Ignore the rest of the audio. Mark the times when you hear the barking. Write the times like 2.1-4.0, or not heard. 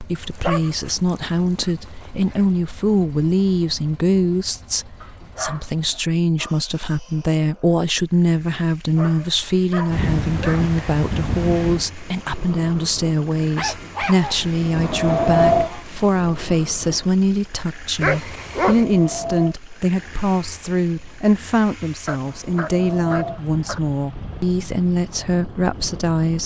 0.2-2.4, 5.0-6.5, 8.9-10.8, 13.6-15.8, 18.0-18.9, 22.1-23.8.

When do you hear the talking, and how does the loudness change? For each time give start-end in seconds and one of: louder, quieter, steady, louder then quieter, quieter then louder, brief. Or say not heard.
0.0-26.4 steady.